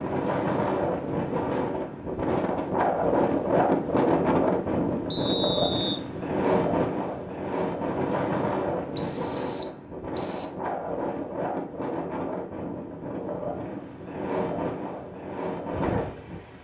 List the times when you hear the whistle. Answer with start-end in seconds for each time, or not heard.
5.1-6.0, 8.9-10.5.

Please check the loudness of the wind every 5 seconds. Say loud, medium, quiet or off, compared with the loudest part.
loud, loud, medium, medium.